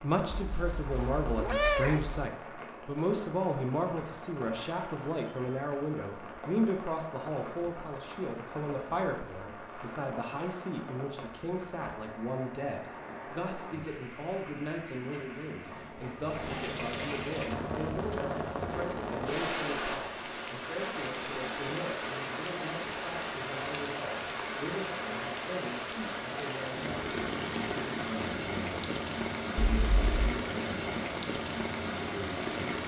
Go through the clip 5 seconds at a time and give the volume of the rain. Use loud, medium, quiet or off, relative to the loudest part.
medium, medium, medium, loud, loud, loud, loud.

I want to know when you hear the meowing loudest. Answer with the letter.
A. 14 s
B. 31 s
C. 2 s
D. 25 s
C.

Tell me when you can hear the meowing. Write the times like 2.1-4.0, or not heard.
0.3-2.2, 29.6-30.1.